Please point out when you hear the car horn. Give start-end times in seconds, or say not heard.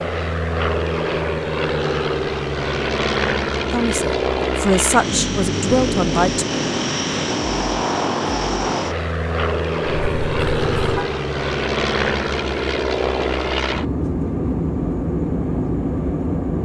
9.8-11.1.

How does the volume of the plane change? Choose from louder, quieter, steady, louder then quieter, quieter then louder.
steady.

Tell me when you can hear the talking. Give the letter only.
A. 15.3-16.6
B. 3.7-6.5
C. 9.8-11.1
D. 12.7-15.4
B.